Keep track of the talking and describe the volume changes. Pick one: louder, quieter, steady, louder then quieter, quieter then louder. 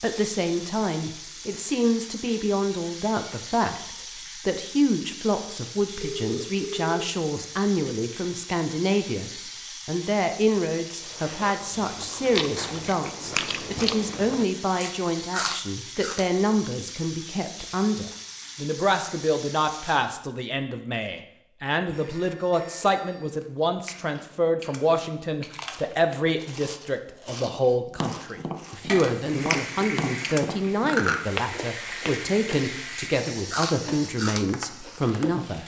steady.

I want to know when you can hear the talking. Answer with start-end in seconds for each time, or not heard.
0.0-35.6.